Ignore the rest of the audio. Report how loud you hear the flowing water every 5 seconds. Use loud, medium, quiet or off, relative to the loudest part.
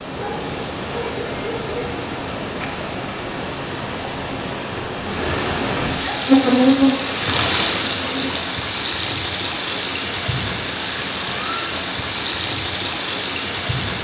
medium, loud, loud.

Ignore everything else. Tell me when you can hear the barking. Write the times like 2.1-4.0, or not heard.
0.1-2.0.